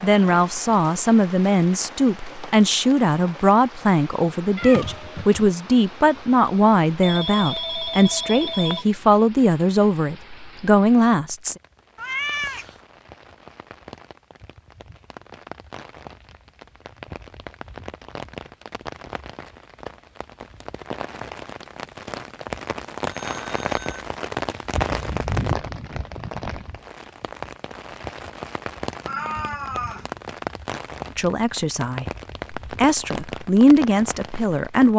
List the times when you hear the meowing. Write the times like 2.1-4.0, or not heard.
4.5-5.5, 11.9-12.8, 29.1-30.1.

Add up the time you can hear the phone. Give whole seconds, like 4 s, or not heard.
3 s.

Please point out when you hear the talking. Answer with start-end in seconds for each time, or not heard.
0.0-11.6, 31.1-34.9.